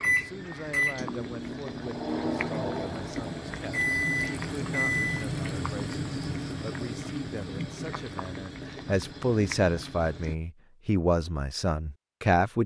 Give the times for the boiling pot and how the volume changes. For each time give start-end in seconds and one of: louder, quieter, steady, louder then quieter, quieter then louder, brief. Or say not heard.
0.0-10.3 louder then quieter.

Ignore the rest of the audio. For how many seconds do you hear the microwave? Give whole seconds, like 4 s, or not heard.
5 s.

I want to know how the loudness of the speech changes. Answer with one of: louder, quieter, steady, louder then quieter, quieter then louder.
louder.